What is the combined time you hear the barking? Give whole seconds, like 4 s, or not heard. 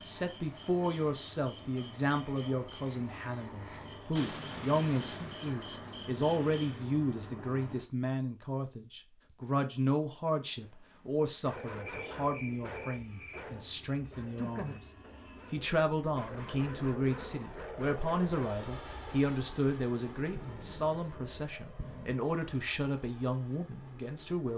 8 s.